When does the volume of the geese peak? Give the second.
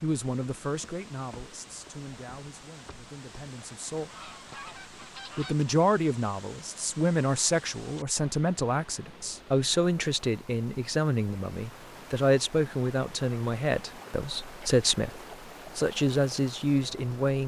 5 s.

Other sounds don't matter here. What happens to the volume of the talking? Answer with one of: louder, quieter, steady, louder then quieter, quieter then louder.
louder.